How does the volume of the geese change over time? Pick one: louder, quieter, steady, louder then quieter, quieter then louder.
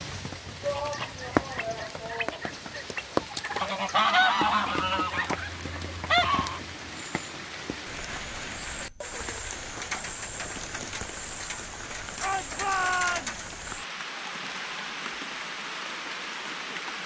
louder.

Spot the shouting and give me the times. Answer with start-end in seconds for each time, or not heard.
0.6-2.9, 12.2-13.3.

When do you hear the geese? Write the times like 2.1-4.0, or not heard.
0.6-6.6.